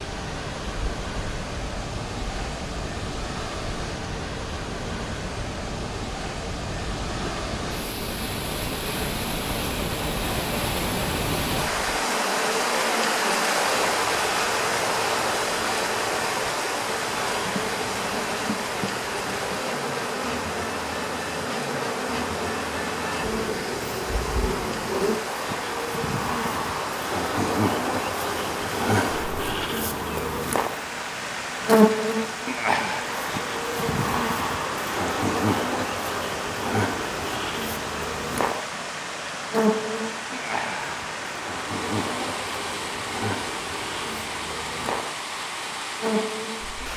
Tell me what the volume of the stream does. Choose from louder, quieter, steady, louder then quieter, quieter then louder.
louder then quieter.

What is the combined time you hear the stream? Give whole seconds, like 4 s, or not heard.
47 s.